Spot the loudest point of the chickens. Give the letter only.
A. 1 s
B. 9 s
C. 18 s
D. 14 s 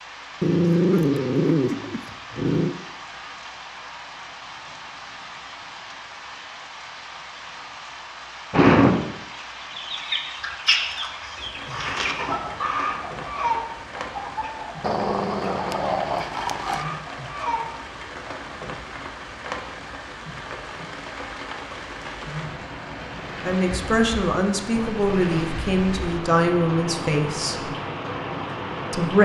B.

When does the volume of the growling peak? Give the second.
1 s.